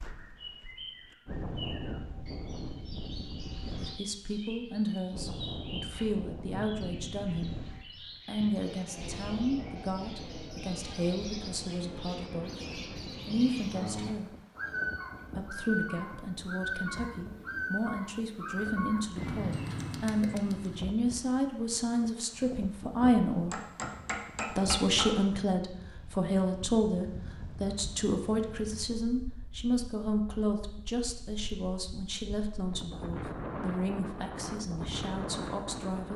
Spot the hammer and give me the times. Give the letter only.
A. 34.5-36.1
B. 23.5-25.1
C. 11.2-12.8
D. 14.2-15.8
B.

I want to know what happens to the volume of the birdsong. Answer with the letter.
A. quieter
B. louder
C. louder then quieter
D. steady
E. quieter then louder
B.